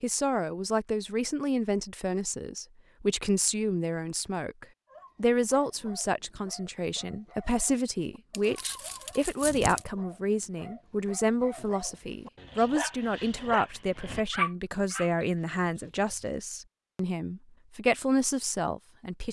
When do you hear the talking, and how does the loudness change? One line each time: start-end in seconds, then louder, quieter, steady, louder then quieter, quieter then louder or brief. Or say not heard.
0.0-19.2 steady.